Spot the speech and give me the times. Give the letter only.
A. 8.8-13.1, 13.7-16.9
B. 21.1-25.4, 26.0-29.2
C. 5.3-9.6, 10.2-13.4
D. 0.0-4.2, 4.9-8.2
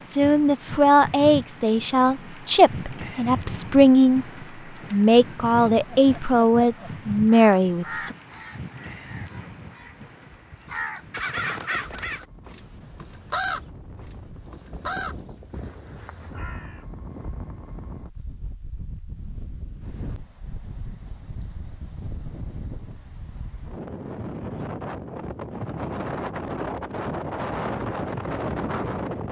D.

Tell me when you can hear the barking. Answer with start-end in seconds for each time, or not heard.
not heard.